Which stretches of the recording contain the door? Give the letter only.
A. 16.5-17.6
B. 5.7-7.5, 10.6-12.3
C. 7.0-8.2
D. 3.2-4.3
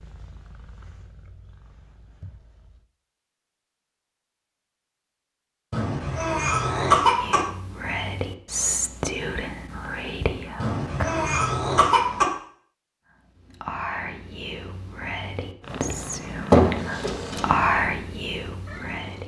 A.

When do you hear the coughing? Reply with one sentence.
You can hear the coughing from 5.7 to 7.5 s and from 10.6 to 12.3 s.